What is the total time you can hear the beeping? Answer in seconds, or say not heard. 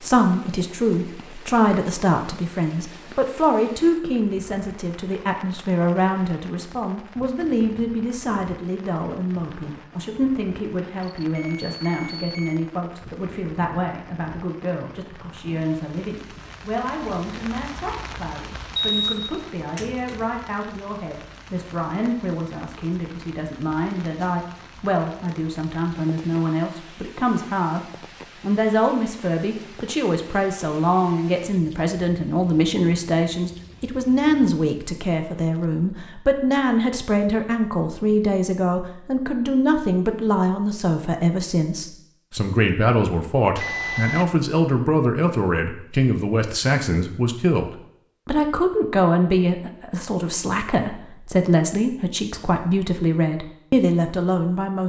4 s.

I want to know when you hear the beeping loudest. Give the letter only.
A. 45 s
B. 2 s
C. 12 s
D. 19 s
D.